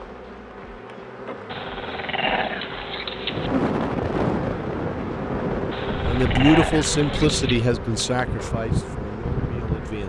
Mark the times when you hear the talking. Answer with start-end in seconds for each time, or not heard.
6.0-10.0.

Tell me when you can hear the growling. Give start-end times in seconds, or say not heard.
1.5-3.5, 5.7-7.7.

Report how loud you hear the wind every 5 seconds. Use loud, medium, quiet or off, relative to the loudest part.
loud, medium.